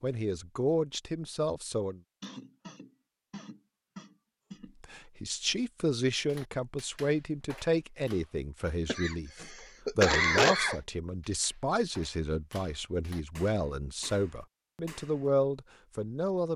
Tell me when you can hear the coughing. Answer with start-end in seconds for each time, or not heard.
2.2-4.8, 8.8-10.8.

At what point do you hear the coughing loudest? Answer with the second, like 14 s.
10 s.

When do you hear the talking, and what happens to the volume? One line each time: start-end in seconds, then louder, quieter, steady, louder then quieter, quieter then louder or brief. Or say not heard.
0.0-2.0 brief
4.8-16.5 steady.